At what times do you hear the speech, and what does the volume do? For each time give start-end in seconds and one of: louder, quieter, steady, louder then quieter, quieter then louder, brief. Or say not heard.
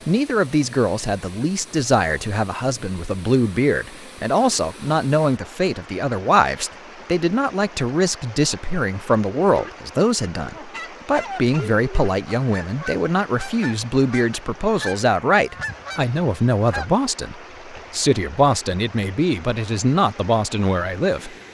0.1-21.4 steady.